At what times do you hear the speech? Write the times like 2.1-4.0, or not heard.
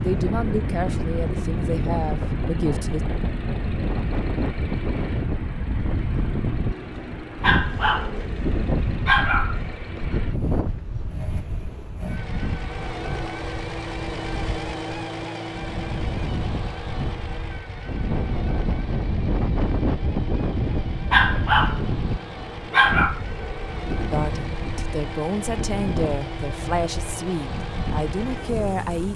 0.0-3.0, 24.1-29.1.